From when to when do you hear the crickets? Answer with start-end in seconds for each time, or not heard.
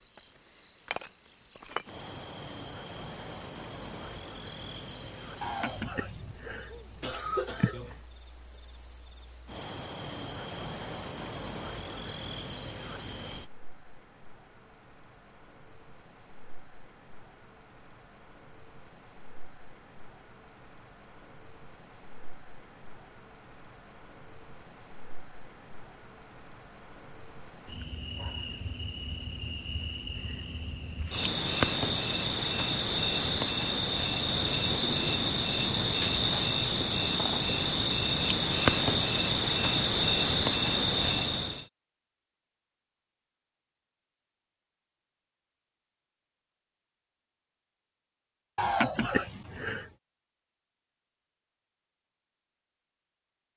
0.0-41.6.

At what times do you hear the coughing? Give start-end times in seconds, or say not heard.
5.4-8.0, 48.5-49.9.